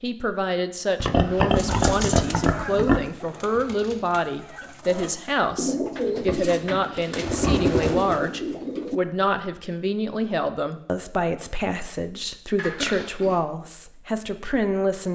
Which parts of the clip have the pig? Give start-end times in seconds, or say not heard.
1.0-3.0, 6.2-7.7, 12.6-13.4.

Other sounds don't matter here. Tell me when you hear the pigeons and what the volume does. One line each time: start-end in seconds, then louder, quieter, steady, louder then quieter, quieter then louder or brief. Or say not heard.
1.6-8.9 quieter then louder.